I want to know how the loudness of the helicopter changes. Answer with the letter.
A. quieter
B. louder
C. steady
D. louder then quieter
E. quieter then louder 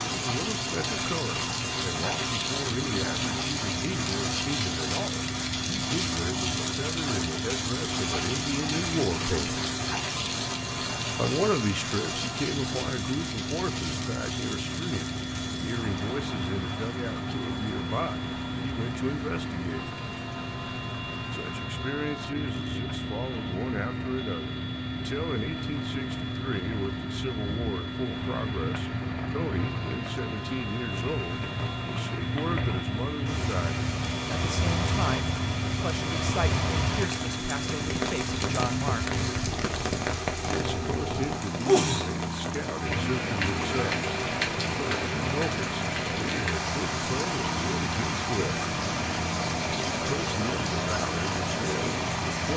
C.